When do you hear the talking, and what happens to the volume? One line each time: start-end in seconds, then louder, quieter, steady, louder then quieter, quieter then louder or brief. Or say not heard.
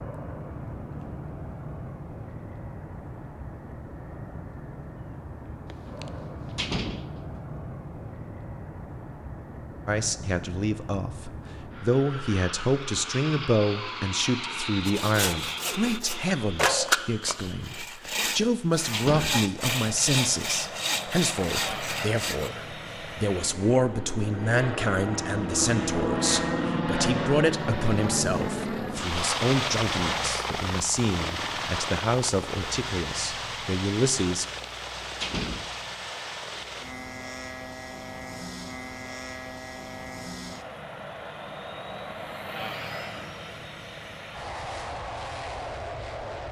9.8-34.5 steady.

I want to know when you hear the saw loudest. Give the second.
17 s.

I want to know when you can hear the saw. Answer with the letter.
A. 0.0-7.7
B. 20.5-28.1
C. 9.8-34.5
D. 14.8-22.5
D.